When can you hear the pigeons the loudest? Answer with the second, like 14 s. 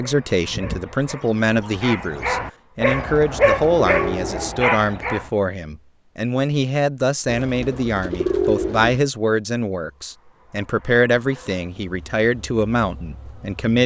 8 s.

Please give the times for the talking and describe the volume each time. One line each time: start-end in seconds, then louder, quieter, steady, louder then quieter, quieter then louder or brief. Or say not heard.
0.0-13.8 steady.